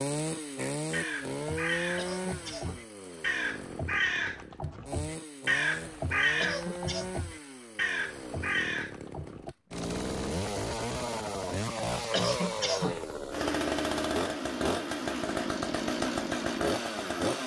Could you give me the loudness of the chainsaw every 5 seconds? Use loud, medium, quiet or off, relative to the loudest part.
medium, medium, loud, loud.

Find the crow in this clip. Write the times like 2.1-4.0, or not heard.
0.6-9.6.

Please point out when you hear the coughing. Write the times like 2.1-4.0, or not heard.
1.9-2.9, 6.4-7.0, 12.1-13.0.